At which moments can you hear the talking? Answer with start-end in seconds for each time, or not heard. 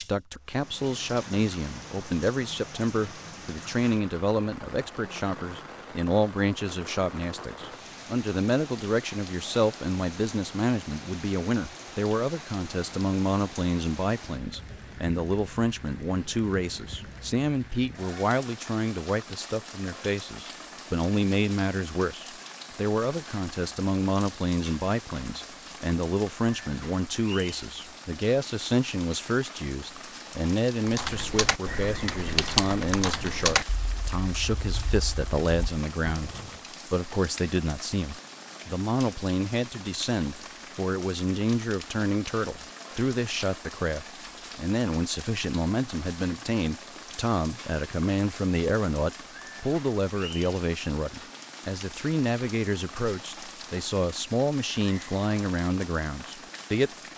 0.0-56.9.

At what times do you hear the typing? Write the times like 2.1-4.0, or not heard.
30.9-36.6.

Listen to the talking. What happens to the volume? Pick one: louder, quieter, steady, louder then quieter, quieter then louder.
steady.